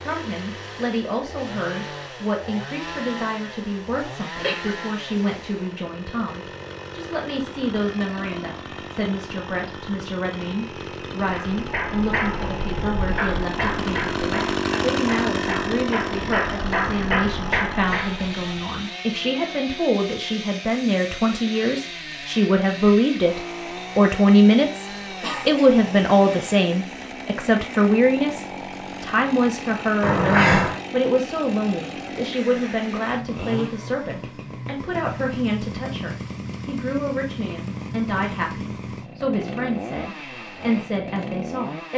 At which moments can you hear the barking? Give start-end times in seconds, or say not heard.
not heard.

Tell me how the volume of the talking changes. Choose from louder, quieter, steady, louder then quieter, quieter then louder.
louder then quieter.